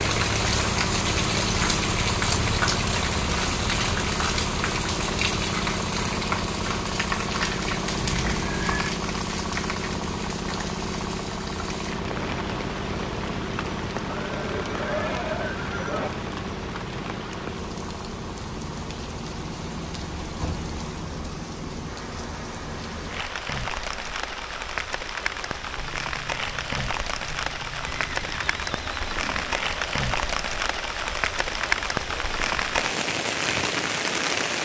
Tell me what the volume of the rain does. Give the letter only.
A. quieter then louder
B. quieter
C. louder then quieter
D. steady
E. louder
A.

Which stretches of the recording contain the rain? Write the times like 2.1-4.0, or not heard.
0.0-34.6.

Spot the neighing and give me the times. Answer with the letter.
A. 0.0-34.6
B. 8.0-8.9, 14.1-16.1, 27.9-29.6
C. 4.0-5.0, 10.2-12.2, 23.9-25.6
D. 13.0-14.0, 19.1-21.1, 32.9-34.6
B.